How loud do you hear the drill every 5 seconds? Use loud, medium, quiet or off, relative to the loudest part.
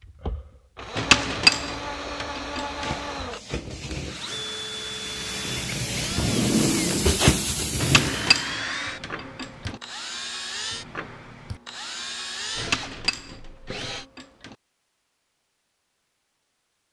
loud, loud, loud, off.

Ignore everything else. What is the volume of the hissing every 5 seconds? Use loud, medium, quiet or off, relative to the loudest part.
quiet, loud, off, off.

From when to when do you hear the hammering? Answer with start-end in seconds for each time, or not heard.
0.9-3.0, 7.8-9.8, 12.6-14.6.